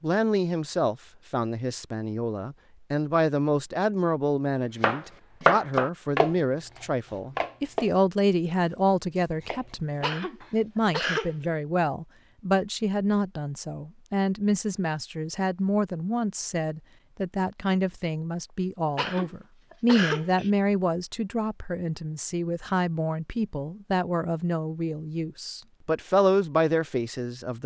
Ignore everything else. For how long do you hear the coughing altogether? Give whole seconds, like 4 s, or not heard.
3 s.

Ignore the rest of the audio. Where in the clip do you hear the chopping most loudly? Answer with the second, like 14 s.
6 s.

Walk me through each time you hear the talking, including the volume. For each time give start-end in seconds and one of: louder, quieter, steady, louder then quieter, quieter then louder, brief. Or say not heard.
0.0-27.6 steady.